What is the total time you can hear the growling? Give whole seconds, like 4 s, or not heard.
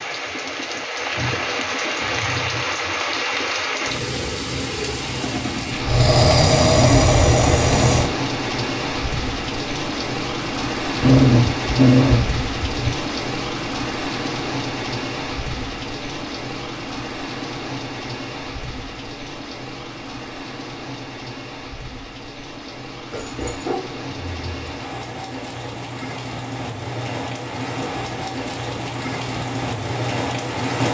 6 s.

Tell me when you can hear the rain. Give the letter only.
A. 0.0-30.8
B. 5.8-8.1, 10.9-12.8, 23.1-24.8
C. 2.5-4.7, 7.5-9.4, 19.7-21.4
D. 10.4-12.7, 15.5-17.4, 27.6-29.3
A.